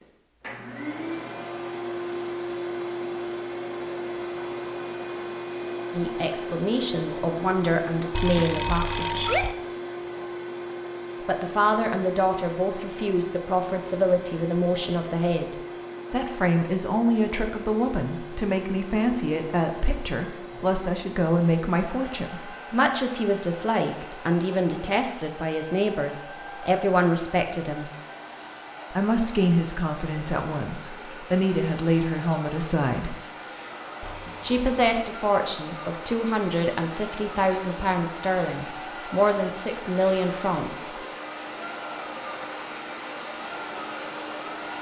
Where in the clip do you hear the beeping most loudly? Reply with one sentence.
The loudest moment of the beeping is at 9 seconds.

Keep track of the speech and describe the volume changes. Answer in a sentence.
The loudness of the speech stays about the same.